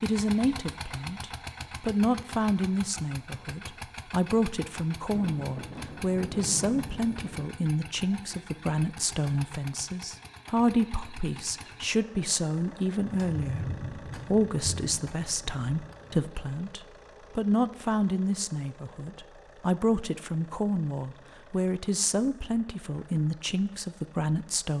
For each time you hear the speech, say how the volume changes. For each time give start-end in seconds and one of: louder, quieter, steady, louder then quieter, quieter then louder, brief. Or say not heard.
0.0-24.7 steady.